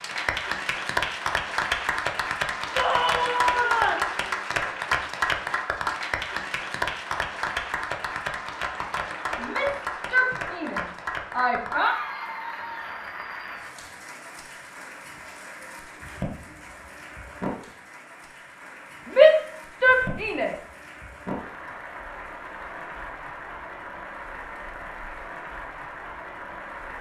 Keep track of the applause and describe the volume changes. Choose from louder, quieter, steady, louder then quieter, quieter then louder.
quieter.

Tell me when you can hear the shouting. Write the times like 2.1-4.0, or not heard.
2.8-4.1, 9.3-11.9, 19.1-20.6.